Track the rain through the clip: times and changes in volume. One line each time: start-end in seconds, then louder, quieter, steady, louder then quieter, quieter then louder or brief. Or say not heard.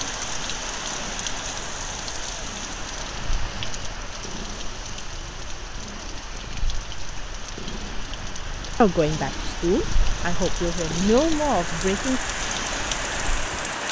0.0-13.8 quieter then louder.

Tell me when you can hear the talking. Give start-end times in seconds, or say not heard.
8.8-12.2.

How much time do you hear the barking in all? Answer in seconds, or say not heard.
not heard.